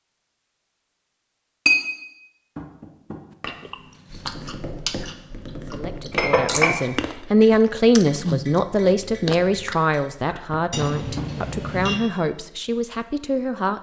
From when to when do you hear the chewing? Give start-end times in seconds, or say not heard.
3.5-9.8.